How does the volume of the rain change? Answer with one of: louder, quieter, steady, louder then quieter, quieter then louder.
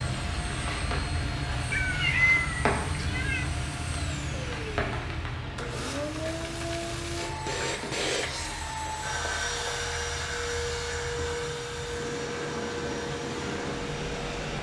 quieter then louder.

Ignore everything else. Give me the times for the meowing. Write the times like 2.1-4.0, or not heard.
1.7-3.5.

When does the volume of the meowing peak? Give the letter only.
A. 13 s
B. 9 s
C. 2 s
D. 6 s
C.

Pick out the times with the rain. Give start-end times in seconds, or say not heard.
0.0-14.5.